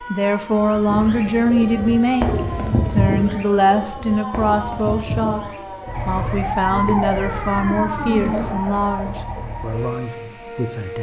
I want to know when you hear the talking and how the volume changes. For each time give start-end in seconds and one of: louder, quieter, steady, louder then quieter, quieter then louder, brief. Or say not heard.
0.0-10.9 quieter.